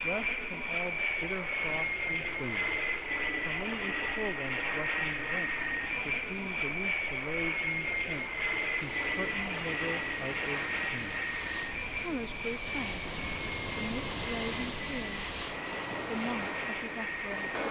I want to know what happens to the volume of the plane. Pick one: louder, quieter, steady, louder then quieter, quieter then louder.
quieter.